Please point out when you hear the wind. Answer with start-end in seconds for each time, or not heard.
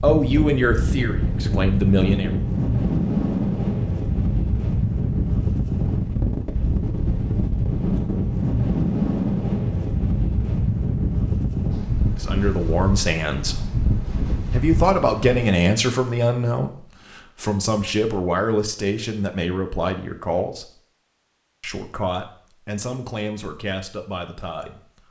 0.0-15.6.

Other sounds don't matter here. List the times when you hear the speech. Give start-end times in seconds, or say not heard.
0.0-2.3, 12.2-13.7, 14.5-20.7, 21.6-25.0.